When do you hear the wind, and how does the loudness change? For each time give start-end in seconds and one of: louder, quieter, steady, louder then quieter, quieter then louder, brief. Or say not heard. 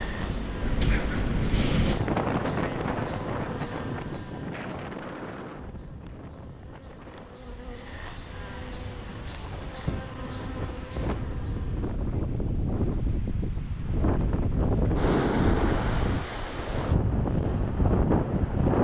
0.0-18.7 quieter then louder.